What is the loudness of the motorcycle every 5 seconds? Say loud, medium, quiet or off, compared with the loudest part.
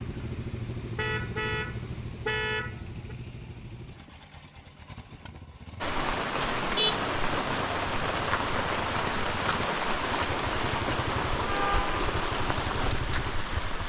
loud, medium, loud.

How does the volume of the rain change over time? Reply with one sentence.
The volume of the rain stays about the same.